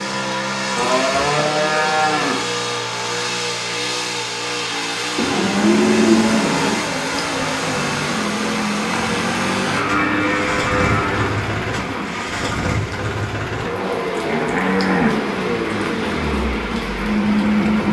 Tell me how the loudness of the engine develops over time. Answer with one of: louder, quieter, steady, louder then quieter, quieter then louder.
steady.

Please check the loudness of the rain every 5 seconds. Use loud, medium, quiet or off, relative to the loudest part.
off, loud, loud, loud.